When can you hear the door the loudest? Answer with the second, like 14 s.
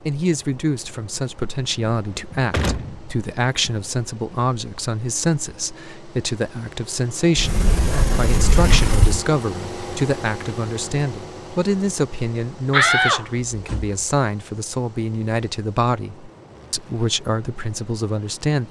13 s.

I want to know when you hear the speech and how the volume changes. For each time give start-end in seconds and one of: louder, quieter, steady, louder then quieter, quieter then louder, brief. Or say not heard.
0.0-18.6 steady.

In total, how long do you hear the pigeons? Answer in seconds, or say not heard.
not heard.